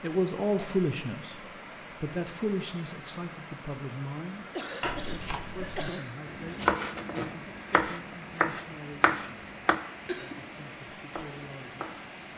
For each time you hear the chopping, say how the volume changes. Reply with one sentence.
You can hear the chopping from 4.8 to 12.2 s, getting louder then quieter.